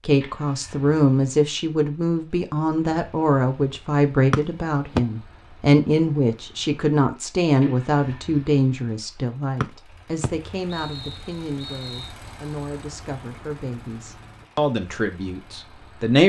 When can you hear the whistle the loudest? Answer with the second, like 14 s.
5 s.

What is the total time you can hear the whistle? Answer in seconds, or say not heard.
3 s.